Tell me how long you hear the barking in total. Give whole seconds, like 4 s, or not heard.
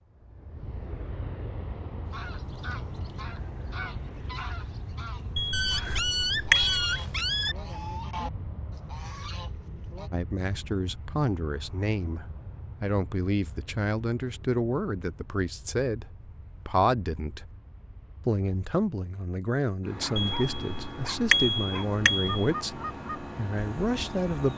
4 s.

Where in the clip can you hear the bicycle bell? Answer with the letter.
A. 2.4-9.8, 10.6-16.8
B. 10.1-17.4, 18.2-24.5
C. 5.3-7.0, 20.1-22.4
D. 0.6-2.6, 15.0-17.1
C.